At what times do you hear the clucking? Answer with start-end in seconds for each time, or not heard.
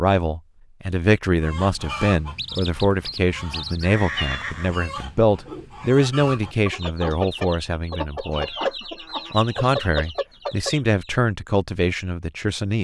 1.4-11.1.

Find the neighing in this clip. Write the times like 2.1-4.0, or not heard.
3.8-4.8.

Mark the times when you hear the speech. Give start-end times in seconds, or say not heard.
0.0-8.6, 9.3-12.7.